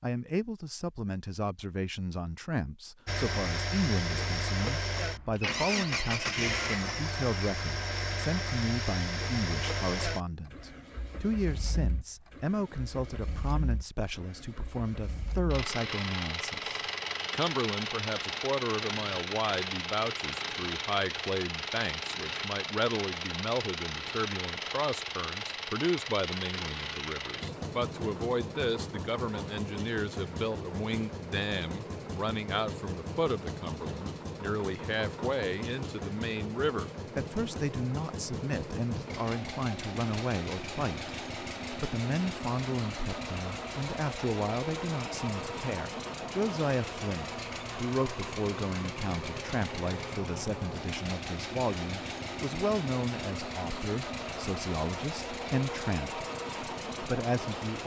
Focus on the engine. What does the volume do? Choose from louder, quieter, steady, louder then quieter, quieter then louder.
steady.